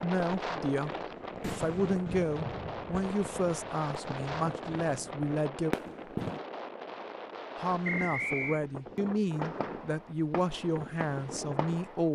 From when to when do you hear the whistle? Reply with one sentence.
You can hear the whistle from 7.8 to 8.6 s.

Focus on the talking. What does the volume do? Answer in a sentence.
The loudness of the talking stays about the same.